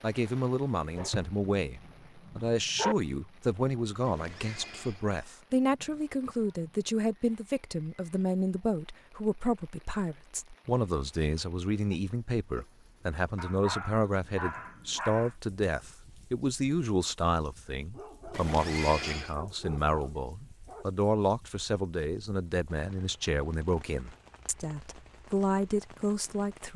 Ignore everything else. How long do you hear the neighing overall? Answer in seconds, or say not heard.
2 s.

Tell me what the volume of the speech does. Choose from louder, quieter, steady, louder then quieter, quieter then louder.
steady.